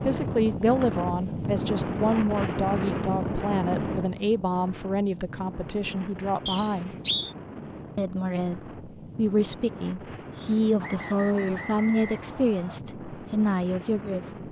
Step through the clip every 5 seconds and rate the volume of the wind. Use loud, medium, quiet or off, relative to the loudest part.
loud, medium, medium.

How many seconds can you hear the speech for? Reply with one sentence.
The speech can be heard for 13 seconds in total.